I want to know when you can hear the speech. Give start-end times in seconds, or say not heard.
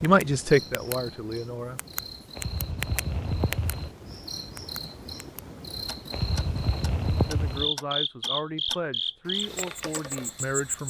0.0-1.8, 7.2-10.8.